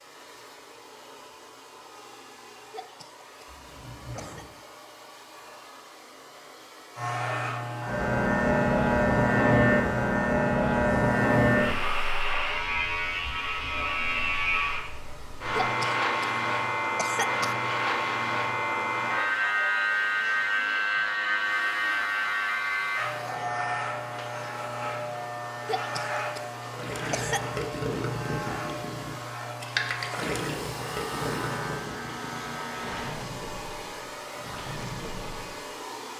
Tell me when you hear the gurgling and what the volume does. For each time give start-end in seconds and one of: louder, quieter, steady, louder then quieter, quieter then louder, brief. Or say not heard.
26.6-35.7 quieter.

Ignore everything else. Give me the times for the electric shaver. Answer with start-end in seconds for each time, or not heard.
7.0-33.1.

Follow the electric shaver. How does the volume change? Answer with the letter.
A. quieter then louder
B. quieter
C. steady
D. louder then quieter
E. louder
B.